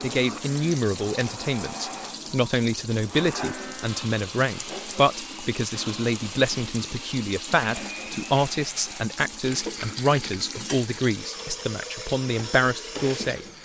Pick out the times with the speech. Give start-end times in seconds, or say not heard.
0.0-13.4.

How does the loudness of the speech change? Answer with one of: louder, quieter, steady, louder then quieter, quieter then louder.
steady.